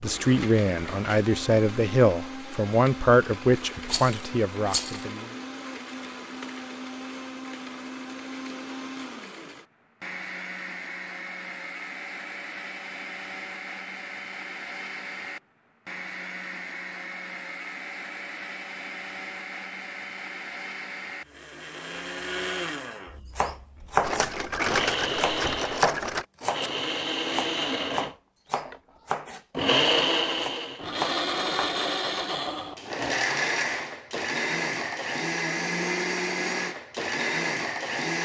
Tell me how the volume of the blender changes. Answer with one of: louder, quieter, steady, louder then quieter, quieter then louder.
louder.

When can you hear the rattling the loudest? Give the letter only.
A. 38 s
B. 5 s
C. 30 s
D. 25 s
D.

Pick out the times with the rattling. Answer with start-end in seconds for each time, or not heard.
3.9-5.0, 24.0-26.2.